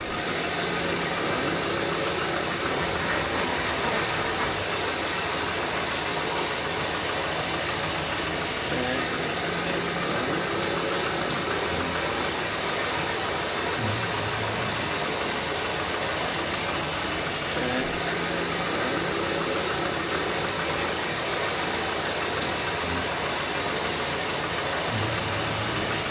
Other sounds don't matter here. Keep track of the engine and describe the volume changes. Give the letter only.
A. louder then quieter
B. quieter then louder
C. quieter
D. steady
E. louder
D.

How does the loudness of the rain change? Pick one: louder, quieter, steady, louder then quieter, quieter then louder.
steady.